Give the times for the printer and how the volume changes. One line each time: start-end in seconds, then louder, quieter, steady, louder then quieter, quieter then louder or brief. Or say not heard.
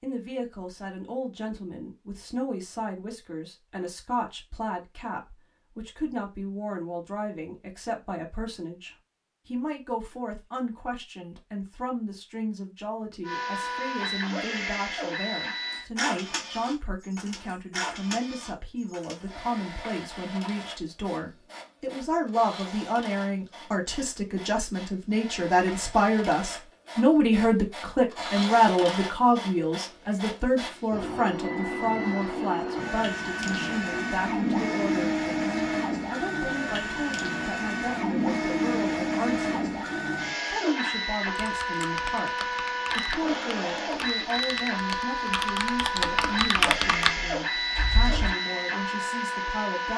13.2-49.9 quieter then louder.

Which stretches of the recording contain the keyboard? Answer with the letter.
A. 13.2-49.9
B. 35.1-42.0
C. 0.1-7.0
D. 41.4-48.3
D.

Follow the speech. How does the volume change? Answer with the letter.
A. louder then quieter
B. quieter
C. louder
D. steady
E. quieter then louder
A.